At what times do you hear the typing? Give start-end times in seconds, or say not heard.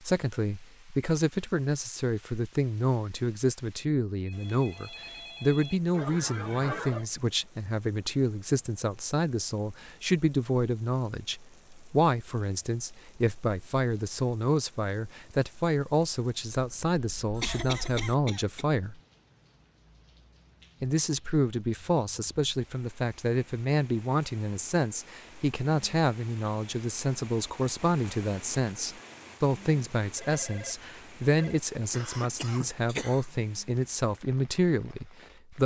not heard.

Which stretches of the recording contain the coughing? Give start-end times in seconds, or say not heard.
5.9-7.0, 17.4-18.6, 31.9-33.2.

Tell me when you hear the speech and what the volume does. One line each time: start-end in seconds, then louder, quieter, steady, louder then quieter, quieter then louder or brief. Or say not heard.
0.1-18.9 steady
20.8-35.6 steady.